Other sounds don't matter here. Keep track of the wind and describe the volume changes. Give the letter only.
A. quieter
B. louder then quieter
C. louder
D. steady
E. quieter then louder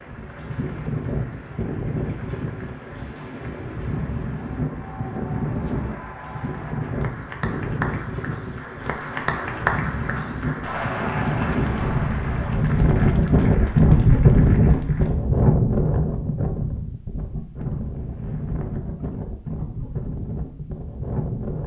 B.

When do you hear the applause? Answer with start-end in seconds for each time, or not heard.
0.0-15.1.